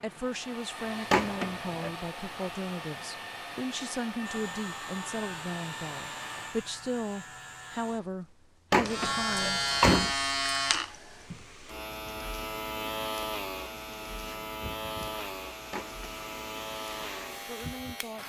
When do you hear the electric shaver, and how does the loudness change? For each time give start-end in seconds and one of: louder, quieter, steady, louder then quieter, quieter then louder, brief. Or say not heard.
4.2-18.2 louder then quieter.